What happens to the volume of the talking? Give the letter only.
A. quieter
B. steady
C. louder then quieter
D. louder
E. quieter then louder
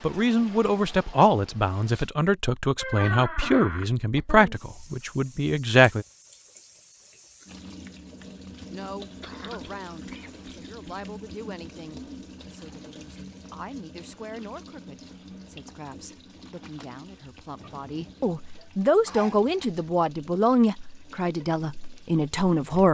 E.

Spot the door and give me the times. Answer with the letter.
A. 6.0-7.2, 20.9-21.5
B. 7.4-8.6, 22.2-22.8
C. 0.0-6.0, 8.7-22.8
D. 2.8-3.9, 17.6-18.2
D.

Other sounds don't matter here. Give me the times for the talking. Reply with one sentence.
The talking can be heard from 0.0 to 6.0 s and from 8.7 to 22.8 s.